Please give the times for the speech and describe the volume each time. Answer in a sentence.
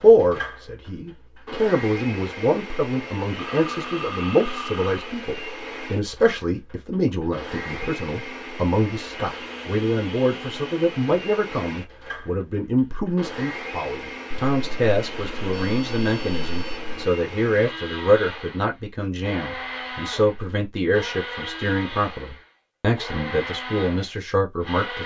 You can hear the speech from 0.0 to 25.0 s, at a steady volume.